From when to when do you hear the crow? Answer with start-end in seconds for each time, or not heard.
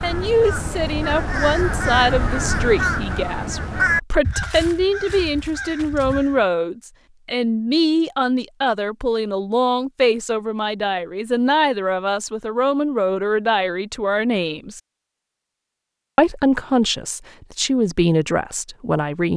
0.0-6.5.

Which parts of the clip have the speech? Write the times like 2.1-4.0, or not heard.
0.0-14.8, 16.1-19.3.